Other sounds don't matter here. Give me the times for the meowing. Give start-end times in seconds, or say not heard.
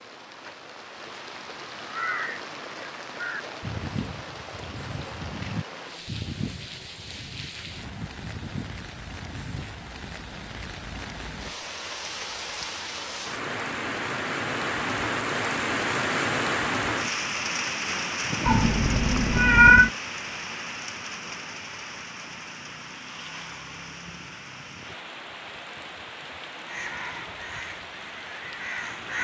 18.4-19.9.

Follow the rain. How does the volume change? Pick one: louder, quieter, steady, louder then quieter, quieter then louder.
louder then quieter.